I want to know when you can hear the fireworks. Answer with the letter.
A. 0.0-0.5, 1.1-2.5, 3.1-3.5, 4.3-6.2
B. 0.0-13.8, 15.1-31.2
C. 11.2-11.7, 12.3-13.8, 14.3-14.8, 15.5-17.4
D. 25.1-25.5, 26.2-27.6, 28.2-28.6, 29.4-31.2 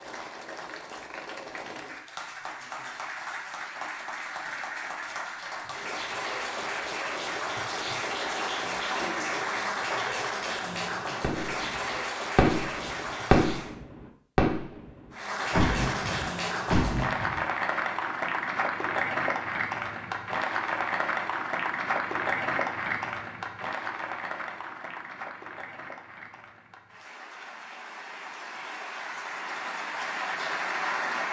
C.